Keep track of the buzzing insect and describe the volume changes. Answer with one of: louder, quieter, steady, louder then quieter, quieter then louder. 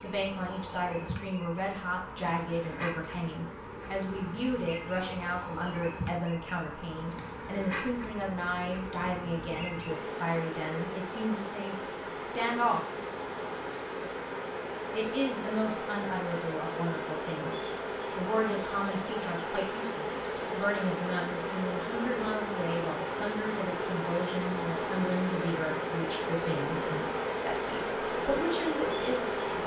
louder.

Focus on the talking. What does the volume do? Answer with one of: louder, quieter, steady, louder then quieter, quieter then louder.
steady.